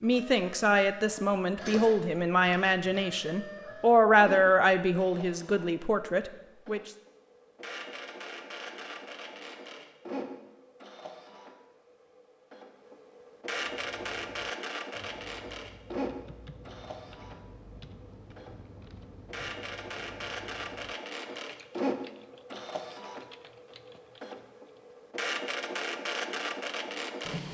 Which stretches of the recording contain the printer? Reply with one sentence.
You can hear the printer from 0.0 to 27.4 s.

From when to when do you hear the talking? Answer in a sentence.
The talking can be heard from 0.0 to 6.9 s.